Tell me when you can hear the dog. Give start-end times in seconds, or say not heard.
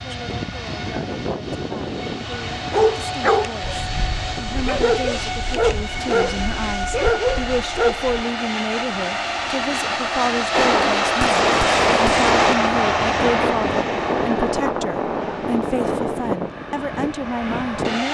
2.5-8.2.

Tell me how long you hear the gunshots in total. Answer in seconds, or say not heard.
2 s.